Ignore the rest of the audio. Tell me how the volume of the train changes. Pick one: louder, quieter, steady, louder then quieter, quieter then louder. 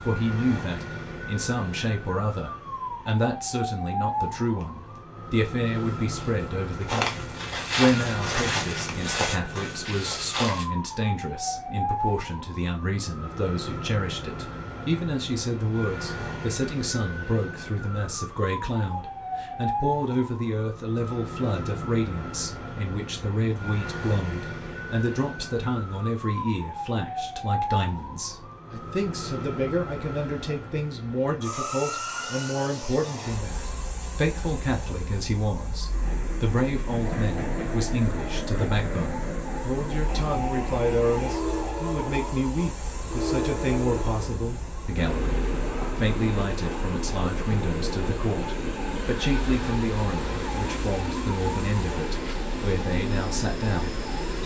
steady.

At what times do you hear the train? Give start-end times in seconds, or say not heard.
35.8-54.4.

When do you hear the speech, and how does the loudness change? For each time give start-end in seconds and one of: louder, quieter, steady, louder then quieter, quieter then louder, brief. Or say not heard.
0.0-54.0 steady.